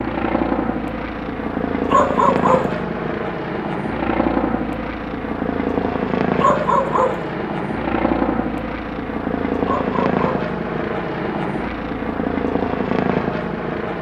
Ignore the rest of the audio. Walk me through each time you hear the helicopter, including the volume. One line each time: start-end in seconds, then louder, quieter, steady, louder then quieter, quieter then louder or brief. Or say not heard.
0.0-13.9 steady.